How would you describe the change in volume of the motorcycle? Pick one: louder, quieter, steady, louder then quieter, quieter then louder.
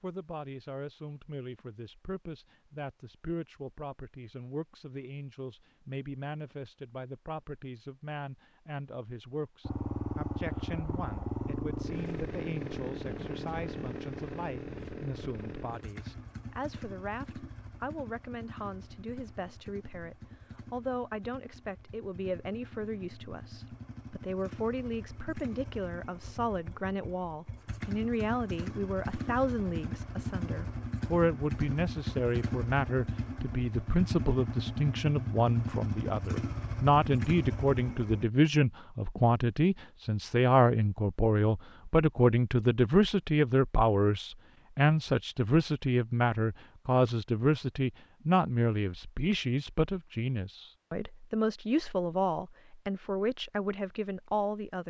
quieter then louder.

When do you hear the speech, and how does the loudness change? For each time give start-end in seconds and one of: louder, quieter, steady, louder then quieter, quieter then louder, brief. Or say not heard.
0.0-54.8 louder.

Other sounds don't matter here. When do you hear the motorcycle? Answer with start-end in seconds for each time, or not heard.
9.7-38.2.